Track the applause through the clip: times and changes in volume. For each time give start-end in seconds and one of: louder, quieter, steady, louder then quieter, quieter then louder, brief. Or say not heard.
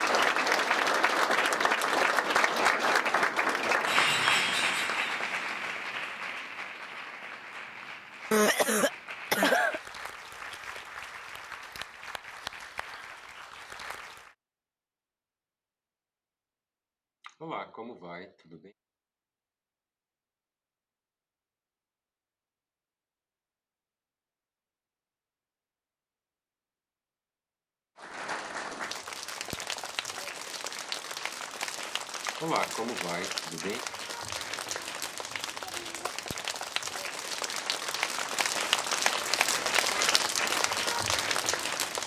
0.0-14.3 quieter
27.9-42.0 louder.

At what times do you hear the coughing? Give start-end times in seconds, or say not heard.
8.3-9.8, 17.2-18.7, 32.2-33.8.